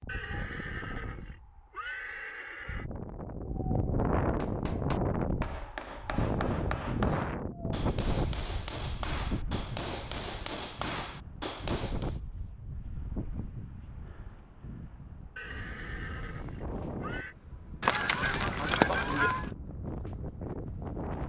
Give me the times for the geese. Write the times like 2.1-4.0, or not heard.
17.8-19.5.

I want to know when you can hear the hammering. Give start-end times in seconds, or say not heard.
4.2-12.2.